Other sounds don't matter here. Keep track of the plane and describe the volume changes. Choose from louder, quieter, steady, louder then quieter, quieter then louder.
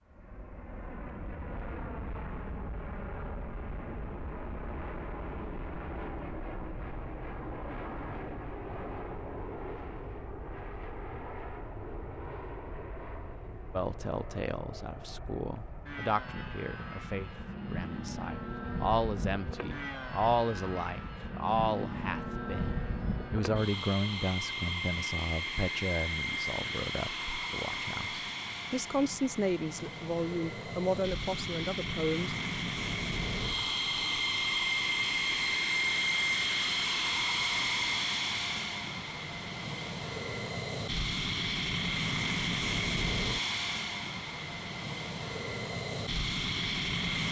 louder.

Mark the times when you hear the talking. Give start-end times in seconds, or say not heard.
13.7-32.4.